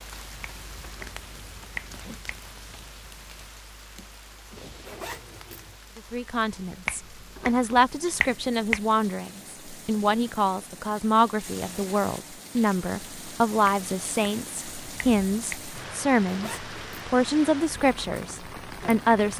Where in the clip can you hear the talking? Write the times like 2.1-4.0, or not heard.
6.0-19.3.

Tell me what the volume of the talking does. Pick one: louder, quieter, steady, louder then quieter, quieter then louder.
steady.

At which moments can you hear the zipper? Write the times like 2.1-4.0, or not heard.
4.8-5.8, 16.2-17.0.